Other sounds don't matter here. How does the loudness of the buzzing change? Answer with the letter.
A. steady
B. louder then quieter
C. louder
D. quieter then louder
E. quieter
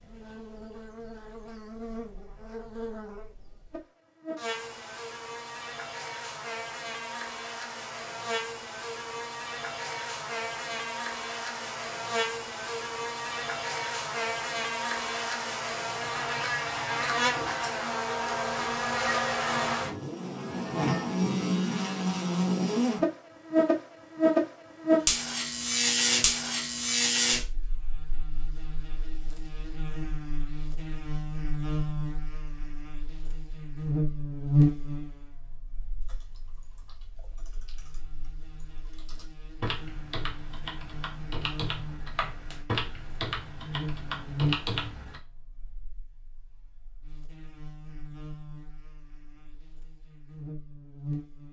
B.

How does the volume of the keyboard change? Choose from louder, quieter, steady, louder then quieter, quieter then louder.
louder.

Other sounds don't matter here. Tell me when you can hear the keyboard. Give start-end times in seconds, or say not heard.
36.0-45.2.